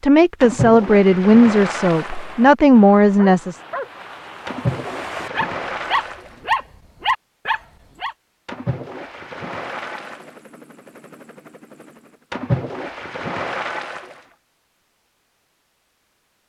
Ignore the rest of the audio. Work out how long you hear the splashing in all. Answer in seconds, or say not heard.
8 s.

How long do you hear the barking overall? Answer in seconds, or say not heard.
6 s.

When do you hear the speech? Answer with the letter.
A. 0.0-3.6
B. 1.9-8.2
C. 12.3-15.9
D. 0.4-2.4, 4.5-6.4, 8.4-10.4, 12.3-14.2
A.